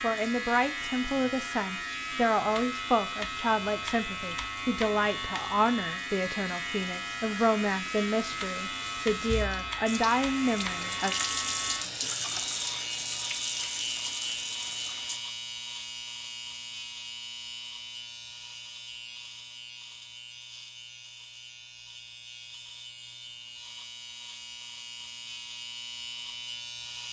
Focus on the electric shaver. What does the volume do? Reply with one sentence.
The loudness of the electric shaver goes down.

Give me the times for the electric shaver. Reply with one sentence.
You can hear the electric shaver from 0.0 to 27.0 s.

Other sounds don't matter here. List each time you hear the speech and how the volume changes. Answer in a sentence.
You can hear the speech from 0.0 to 11.2 s, at a steady volume.